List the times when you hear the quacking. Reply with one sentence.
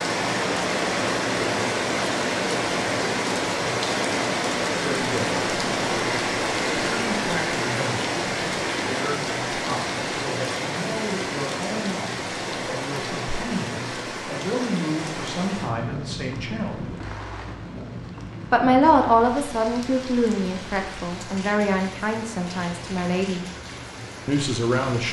You can't hear the quacking here.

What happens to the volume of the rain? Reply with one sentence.
The loudness of the rain goes down.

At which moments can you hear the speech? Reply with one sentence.
The speech can be heard from 4.7 to 5.4 s, from 6.7 to 16.9 s, from 18.5 to 23.4 s and from 24.2 to 25.0 s.